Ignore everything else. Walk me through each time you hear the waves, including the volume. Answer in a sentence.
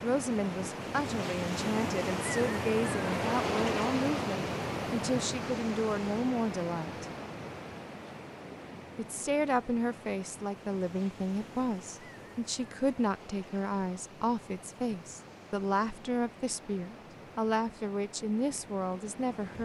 You can hear the waves from 0.0 to 19.5 s, getting quieter.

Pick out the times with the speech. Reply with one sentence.
The speech can be heard from 0.0 to 7.0 s and from 8.9 to 19.5 s.